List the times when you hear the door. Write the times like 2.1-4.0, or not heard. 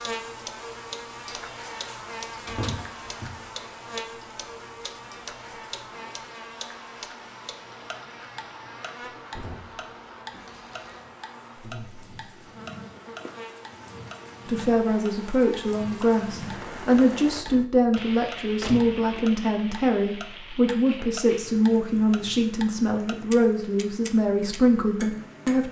2.0-3.5, 9.0-10.4, 18.6-19.1.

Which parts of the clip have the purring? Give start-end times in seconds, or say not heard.
not heard.